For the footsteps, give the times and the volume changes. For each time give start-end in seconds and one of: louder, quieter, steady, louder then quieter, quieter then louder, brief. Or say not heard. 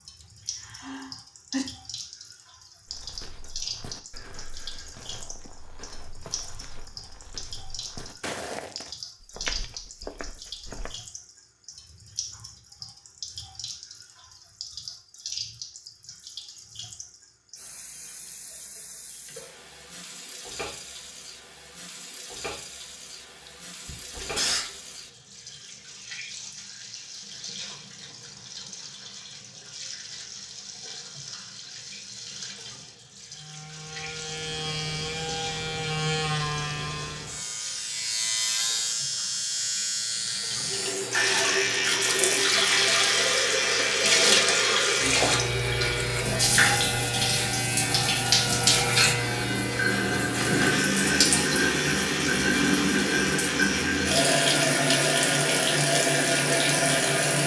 2.9-10.9 louder.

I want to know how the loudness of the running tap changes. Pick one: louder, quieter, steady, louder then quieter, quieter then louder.
louder.